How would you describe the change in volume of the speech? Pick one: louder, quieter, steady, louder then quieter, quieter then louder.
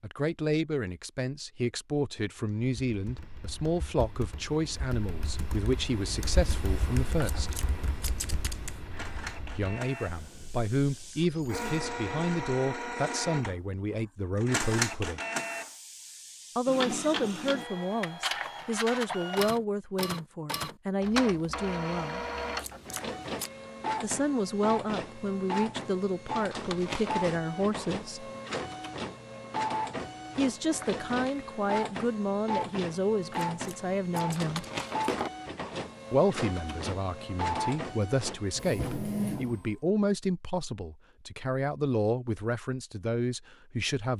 steady.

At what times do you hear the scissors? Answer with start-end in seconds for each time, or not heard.
7.2-8.8, 22.6-23.5, 33.3-35.3.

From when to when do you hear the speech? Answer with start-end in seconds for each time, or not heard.
0.0-7.5, 9.6-15.2, 16.6-22.2, 24.0-28.3, 30.4-34.6, 36.1-44.1.